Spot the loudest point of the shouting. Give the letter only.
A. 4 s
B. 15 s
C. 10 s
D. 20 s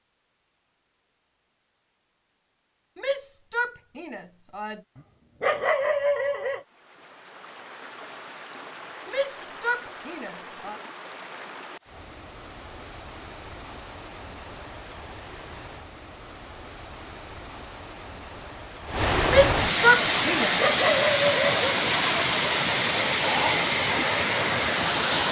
D.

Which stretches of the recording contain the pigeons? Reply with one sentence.
You can't hear the pigeons here.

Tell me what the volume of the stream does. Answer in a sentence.
The loudness of the stream goes up.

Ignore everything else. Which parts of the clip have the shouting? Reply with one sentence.
You can hear the shouting from 3.0 to 4.8 s, from 9.1 to 10.8 s and from 19.2 to 20.6 s.